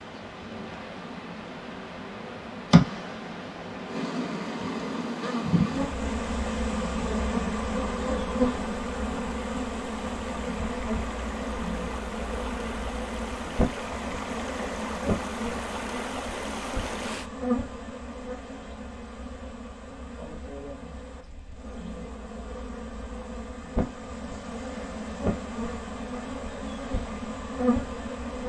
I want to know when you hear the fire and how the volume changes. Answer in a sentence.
You can't hear the fire here.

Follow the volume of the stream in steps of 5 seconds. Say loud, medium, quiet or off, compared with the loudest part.
medium, medium, loud, loud, off, off.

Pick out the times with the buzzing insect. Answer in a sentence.
You can hear the buzzing insect from 0.0 to 28.4 s.